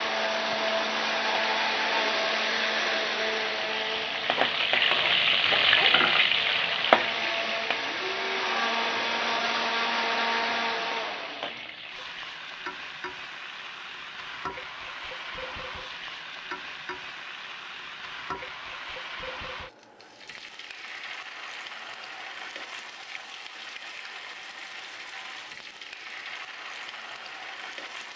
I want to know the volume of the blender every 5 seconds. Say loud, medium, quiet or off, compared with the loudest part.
loud, loud, loud, off, off, off.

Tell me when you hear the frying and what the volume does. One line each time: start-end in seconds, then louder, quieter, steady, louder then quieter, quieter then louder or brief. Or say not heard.
0.0-28.1 quieter.